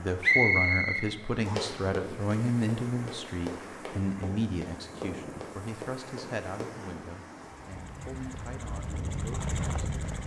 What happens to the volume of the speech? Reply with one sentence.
The volume of the speech goes down.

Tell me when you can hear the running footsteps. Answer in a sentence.
The running footsteps can be heard from 1.4 to 6.8 s.